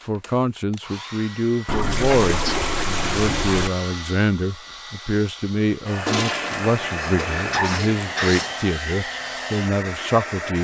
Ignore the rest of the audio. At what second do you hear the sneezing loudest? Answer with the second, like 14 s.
8 s.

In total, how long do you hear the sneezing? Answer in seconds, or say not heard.
2 s.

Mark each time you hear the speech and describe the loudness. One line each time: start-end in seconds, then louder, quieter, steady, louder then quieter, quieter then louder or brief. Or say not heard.
0.1-10.5 steady.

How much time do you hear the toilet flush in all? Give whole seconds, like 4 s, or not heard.
4 s.